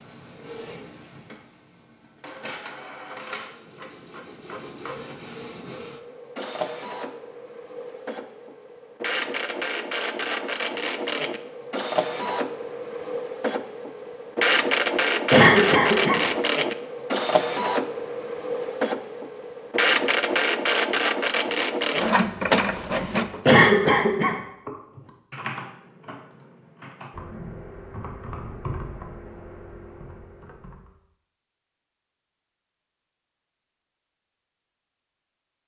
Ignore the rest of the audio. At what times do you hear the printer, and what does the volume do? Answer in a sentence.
The printer can be heard from 0.0 to 23.4 s, getting louder.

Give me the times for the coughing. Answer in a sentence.
The coughing can be heard from 15.3 to 16.2 s and from 23.4 to 24.4 s.